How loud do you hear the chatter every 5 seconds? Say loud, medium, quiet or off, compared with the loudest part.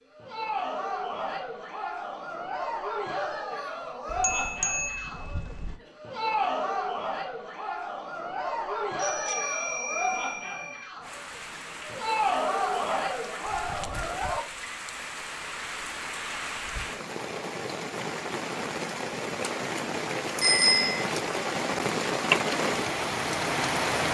loud, loud, loud, off, off.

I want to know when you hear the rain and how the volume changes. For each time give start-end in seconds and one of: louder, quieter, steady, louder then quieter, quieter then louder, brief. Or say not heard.
11.0-24.0 louder.